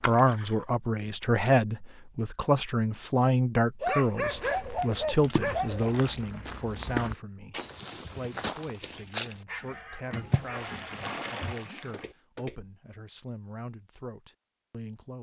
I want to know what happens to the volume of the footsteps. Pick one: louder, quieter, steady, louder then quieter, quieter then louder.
louder then quieter.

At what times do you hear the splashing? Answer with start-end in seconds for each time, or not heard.
0.0-0.7, 5.2-6.2, 10.1-12.1.